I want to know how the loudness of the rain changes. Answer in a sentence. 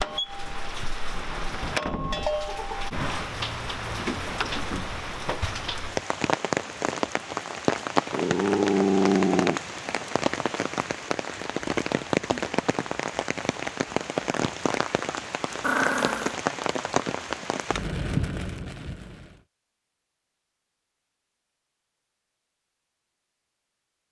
The loudness of the rain stays about the same.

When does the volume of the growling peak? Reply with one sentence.
The loudest moment of the growling is at 9 seconds.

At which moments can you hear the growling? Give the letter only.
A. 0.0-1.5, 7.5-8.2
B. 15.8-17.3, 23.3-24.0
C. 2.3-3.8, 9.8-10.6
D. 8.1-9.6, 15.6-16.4
D.